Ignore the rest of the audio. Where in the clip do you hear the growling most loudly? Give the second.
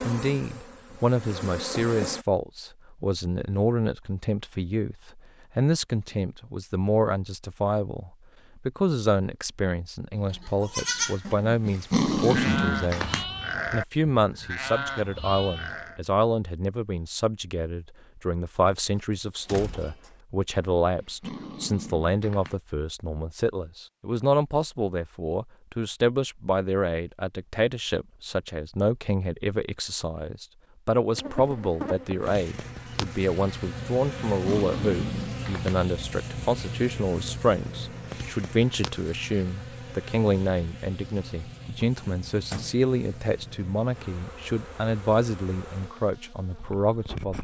12 s.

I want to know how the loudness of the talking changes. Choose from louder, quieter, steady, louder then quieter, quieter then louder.
steady.